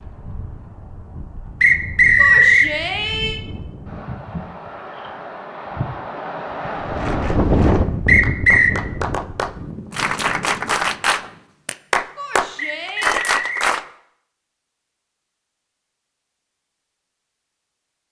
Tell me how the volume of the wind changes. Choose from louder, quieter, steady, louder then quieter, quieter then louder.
louder then quieter.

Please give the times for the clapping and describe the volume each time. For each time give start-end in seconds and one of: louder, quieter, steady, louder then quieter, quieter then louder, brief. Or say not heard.
7.0-13.8 louder.